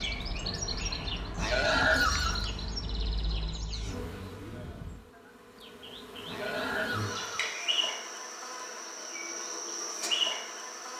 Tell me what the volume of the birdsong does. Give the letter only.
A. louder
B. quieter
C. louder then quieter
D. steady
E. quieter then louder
B.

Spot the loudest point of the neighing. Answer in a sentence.
The volume of the neighing peaks at 2 seconds.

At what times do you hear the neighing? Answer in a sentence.
The neighing can be heard from 1.4 to 2.5 s and from 6.2 to 7.5 s.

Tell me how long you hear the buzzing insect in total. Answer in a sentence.
The buzzing insect can be heard for 7 seconds in total.